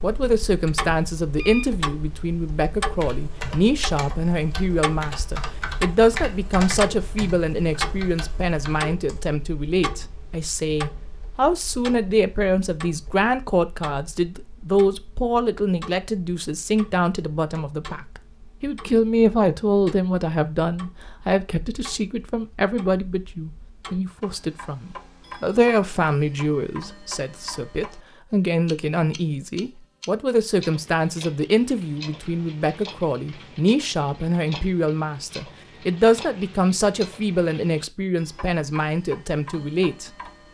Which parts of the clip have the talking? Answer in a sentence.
The talking can be heard from 0.0 to 40.1 s.